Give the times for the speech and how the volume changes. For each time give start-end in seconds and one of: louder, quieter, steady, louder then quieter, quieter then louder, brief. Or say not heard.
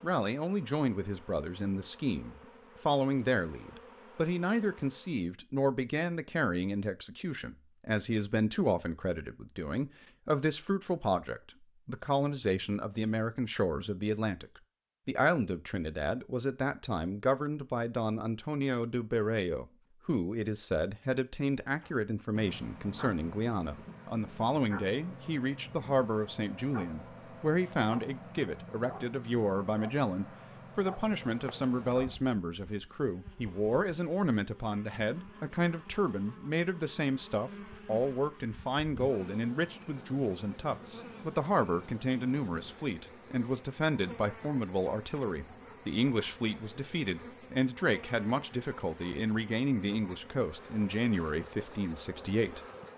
0.0-52.6 steady.